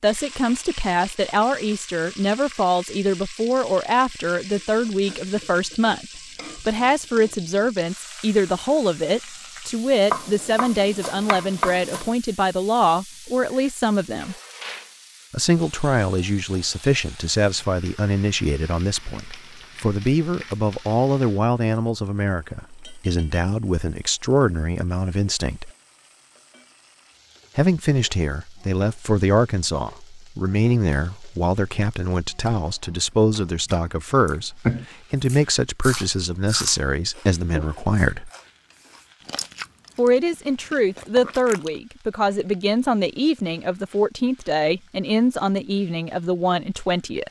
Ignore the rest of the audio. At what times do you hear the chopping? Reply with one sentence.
You can hear the chopping from 10.1 to 12.2 s.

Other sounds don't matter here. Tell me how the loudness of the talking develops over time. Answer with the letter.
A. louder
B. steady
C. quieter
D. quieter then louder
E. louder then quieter
B.